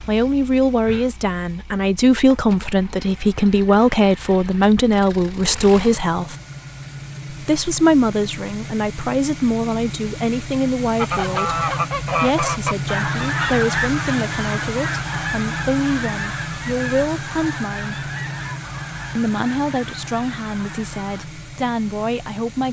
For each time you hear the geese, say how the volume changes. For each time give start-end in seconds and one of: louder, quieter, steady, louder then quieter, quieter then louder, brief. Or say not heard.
10.9-21.2 quieter.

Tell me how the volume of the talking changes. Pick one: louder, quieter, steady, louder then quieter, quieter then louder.
quieter.